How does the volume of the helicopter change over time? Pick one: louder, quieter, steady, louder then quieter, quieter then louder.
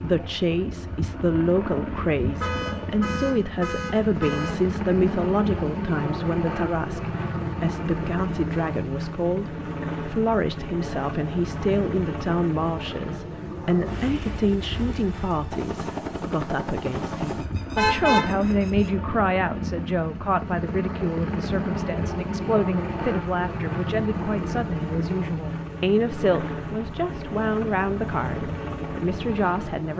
steady.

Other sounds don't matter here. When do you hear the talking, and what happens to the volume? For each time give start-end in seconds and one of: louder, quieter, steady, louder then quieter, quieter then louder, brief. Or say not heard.
0.0-29.9 steady.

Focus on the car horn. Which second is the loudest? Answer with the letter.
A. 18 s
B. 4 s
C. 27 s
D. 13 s
A.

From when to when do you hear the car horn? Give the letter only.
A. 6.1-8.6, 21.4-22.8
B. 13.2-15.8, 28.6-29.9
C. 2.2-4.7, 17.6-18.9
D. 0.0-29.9
C.